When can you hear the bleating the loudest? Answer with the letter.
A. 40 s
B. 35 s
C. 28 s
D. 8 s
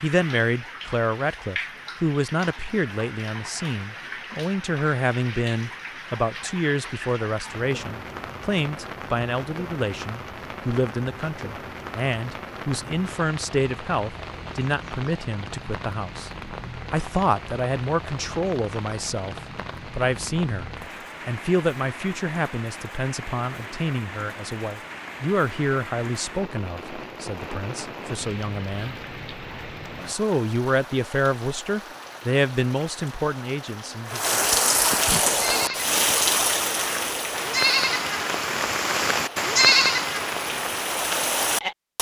A.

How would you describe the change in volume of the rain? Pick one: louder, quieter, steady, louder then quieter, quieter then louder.
louder.